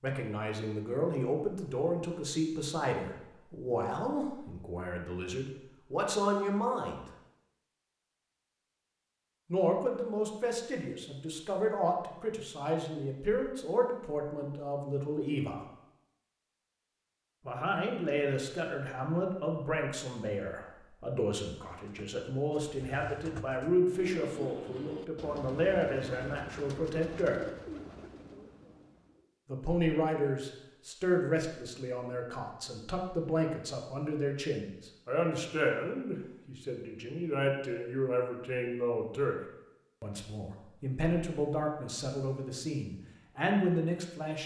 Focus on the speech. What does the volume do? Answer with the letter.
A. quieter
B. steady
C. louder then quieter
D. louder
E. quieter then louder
B.